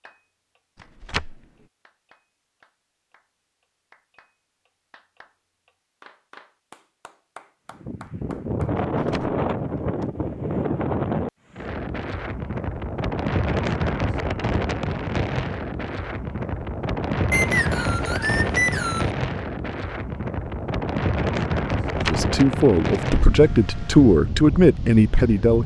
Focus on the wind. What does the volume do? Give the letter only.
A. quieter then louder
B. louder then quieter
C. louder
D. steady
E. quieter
D.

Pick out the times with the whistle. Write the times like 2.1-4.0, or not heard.
17.3-19.1.